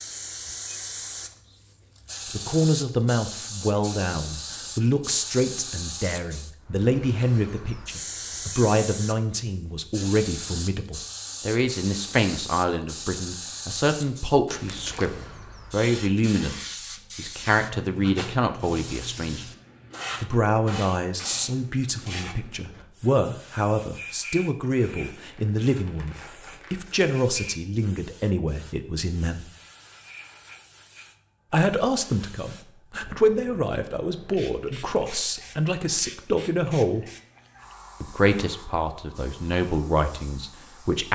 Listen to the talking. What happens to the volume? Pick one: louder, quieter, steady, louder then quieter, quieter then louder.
steady.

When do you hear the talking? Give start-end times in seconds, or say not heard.
2.3-19.4, 20.2-29.4, 31.5-37.0, 38.0-41.1.